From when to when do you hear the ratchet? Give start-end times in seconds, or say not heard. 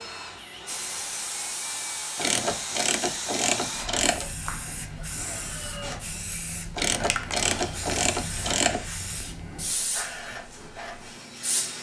2.1-4.2, 6.8-8.8.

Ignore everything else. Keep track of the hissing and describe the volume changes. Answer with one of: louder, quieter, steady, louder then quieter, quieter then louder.
steady.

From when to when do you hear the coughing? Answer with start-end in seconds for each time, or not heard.
not heard.